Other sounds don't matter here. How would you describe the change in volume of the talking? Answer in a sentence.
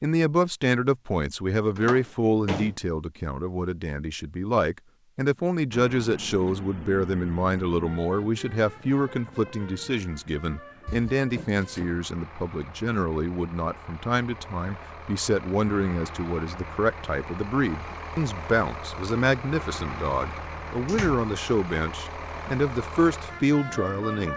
The volume of the talking stays about the same.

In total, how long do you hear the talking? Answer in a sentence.
You can hear the talking for 24 seconds altogether.